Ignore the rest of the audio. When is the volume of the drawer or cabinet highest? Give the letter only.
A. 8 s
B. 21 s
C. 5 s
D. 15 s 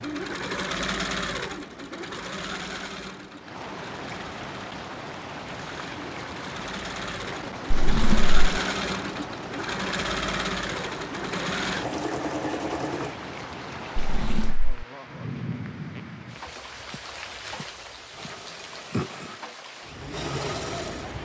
A.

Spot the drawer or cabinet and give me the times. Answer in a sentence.
The drawer or cabinet can be heard from 7.7 to 8.4 s and from 13.9 to 14.8 s.